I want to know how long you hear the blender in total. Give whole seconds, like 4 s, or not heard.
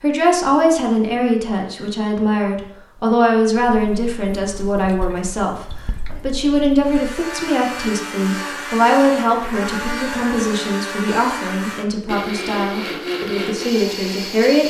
8 s.